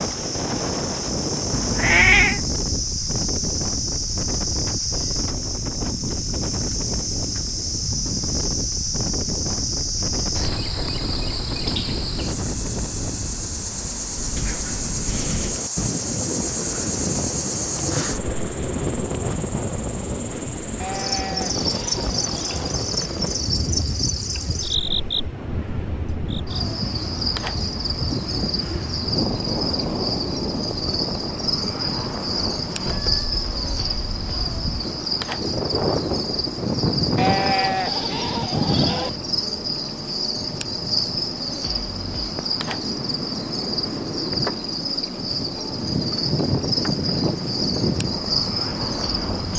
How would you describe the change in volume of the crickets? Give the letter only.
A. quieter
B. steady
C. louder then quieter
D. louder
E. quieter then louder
B.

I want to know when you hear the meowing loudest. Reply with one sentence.
The volume of the meowing peaks at 2 seconds.